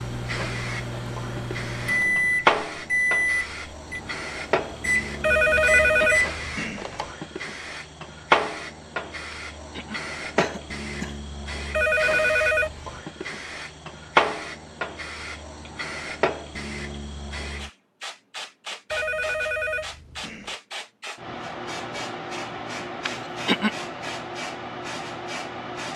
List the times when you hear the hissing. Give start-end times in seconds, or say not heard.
0.0-25.9.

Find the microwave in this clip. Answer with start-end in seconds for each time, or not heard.
0.0-6.3.